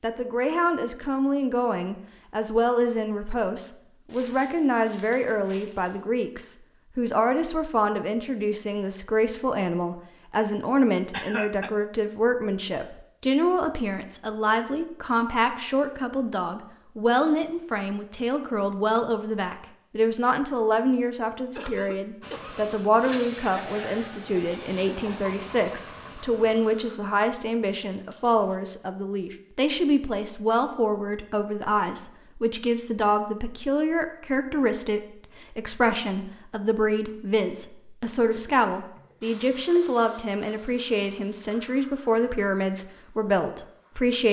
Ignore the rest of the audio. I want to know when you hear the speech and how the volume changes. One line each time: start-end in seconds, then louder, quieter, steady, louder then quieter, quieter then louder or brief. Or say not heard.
0.0-44.2 steady.